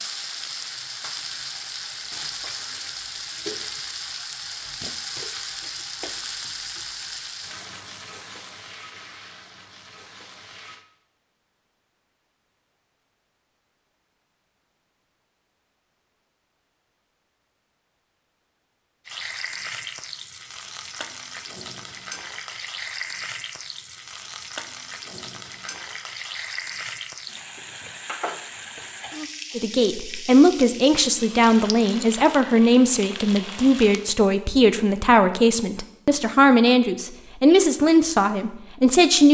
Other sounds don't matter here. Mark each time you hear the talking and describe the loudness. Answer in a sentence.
You can hear the talking from 29.6 to 39.2 s, at a steady volume.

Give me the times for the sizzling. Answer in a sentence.
You can hear the sizzling from 0.0 to 10.8 s and from 19.1 to 34.1 s.